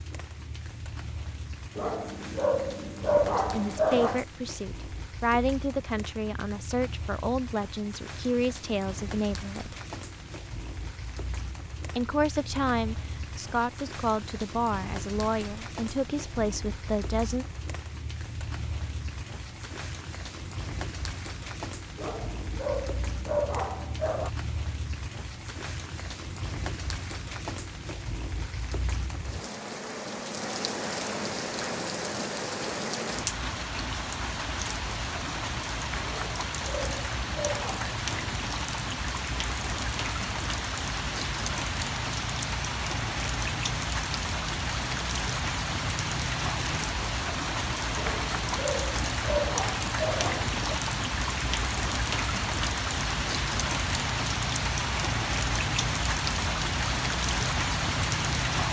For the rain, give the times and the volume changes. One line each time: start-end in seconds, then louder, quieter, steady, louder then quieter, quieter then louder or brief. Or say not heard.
0.0-58.6 louder.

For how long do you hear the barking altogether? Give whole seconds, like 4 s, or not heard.
9 s.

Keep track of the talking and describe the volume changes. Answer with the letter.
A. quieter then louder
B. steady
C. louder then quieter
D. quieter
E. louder
B.